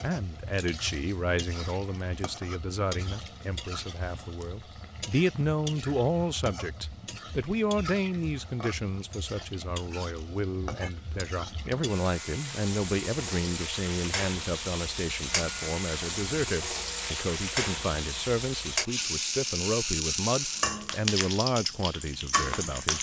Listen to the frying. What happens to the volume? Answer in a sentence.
The volume of the frying goes up.